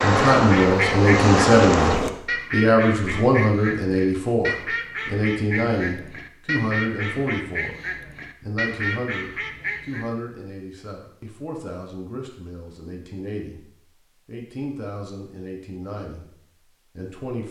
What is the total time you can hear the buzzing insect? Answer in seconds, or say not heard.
2 s.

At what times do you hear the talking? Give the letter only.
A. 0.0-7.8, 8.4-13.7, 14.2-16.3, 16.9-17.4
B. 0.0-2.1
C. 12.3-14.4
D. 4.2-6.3
A.